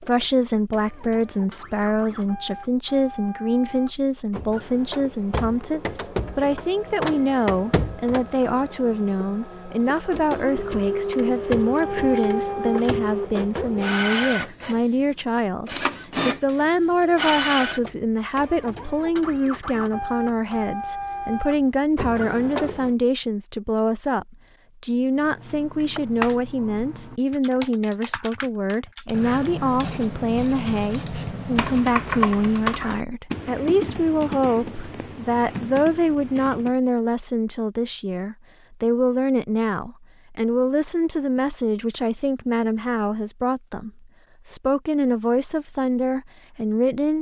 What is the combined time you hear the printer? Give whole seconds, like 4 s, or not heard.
23 s.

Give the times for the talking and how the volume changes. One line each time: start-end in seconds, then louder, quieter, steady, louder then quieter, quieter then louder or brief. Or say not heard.
0.0-47.1 steady.